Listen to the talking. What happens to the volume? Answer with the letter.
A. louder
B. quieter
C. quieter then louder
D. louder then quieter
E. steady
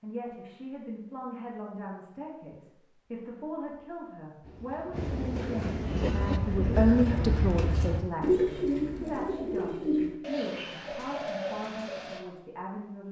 D.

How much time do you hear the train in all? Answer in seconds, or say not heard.
2 s.